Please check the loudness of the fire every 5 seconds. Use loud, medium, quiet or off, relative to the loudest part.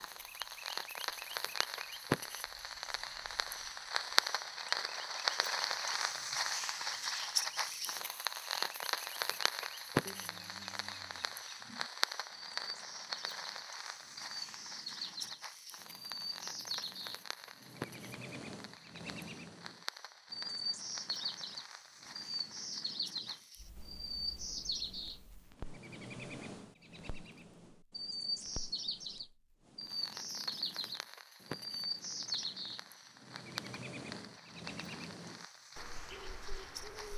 loud, loud, medium, quiet, quiet, quiet, quiet, quiet.